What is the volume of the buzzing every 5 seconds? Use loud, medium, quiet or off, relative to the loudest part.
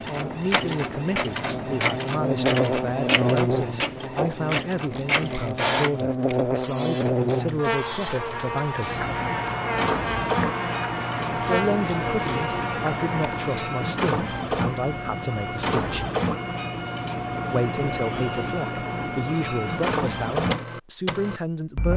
loud, loud, loud, off, off.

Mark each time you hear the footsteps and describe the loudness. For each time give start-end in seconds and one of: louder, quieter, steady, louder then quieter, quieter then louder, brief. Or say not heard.
not heard.